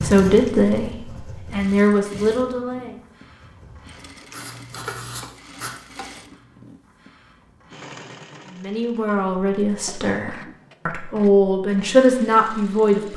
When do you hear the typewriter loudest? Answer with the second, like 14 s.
5 s.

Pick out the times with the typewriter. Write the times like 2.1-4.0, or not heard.
4.7-6.2.